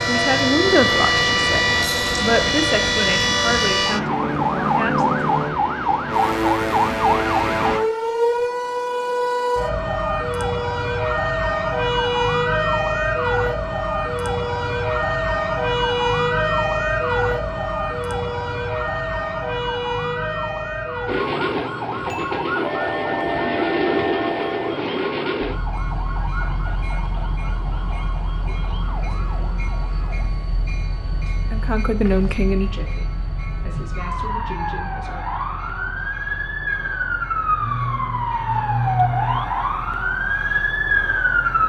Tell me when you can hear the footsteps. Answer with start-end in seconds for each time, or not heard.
not heard.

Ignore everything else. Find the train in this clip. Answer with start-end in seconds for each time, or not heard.
0.0-7.8, 21.1-41.6.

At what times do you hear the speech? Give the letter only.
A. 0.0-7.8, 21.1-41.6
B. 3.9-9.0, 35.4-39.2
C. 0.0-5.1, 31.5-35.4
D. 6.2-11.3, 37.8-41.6
C.